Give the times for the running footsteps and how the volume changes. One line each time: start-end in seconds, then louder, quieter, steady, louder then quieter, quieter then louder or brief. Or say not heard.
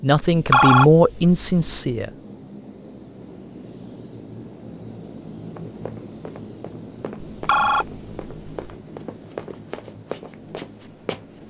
5.5-11.4 louder.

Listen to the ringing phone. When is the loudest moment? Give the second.
1 s.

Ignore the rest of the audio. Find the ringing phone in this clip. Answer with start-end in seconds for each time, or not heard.
0.2-1.8, 7.2-8.8.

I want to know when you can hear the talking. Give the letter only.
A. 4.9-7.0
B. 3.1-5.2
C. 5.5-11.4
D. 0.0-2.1
D.